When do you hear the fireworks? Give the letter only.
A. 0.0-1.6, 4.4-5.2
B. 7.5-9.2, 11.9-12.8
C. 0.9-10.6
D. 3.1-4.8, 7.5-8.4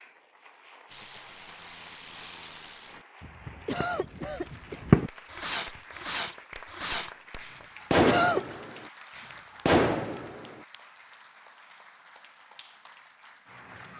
C.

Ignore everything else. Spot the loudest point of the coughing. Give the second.
8 s.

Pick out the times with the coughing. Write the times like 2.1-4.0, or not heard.
3.1-4.8, 7.5-8.4.